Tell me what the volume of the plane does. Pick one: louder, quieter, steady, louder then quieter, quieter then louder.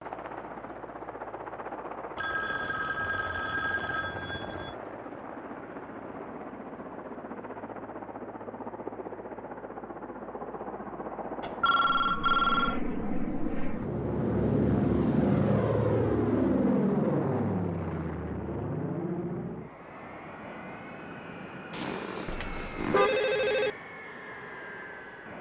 louder then quieter.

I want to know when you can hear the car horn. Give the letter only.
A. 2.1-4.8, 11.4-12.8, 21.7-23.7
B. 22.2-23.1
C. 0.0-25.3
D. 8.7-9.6
B.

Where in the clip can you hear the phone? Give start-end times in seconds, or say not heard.
2.1-4.8, 11.4-12.8, 21.7-23.7.